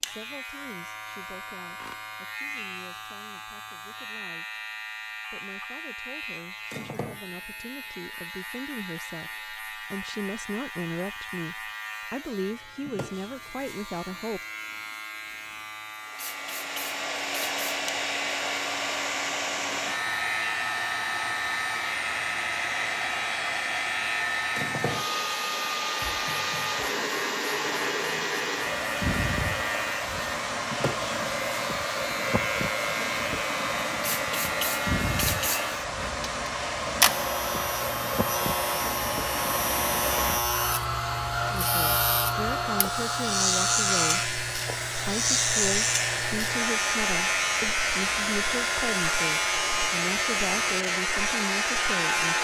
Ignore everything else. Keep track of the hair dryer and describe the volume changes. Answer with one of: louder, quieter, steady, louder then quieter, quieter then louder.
steady.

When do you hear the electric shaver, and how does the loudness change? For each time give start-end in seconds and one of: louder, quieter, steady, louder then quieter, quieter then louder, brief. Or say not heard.
0.0-52.3 louder.